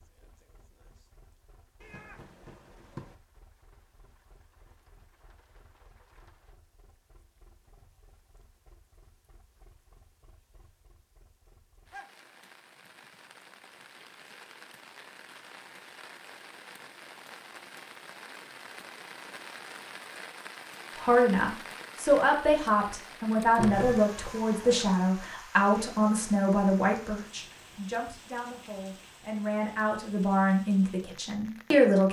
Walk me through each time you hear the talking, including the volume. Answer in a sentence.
You can hear the talking from 20.9 to 32.0 s, getting quieter then louder.